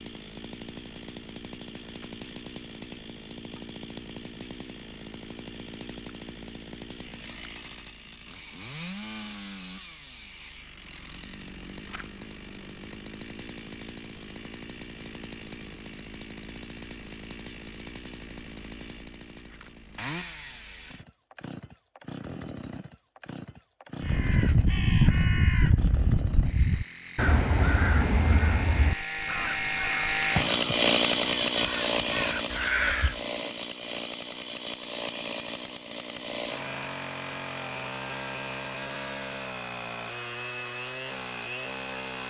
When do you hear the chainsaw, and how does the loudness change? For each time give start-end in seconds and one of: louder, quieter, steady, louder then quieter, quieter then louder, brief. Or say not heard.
0.0-42.2 louder then quieter.